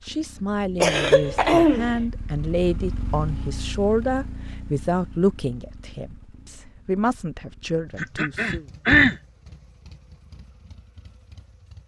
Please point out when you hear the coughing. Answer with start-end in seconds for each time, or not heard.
0.8-1.9, 8.0-9.2.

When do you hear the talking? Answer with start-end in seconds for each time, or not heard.
0.0-8.7.